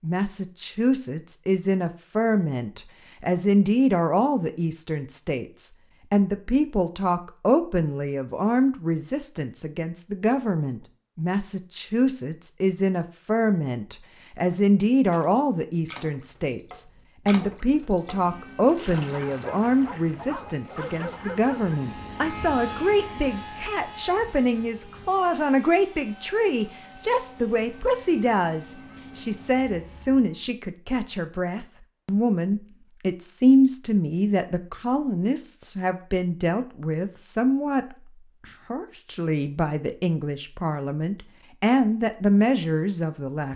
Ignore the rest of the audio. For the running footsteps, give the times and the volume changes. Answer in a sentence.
The running footsteps can't be heard in this clip.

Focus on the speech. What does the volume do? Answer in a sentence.
The volume of the speech stays about the same.